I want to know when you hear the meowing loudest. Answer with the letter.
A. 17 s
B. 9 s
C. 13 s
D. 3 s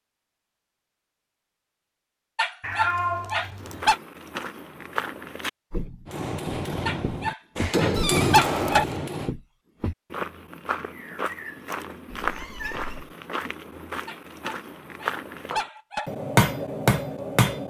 D.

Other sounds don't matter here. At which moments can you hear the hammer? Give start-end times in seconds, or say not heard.
6.0-9.3, 15.5-17.6.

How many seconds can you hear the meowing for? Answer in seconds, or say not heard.
3 s.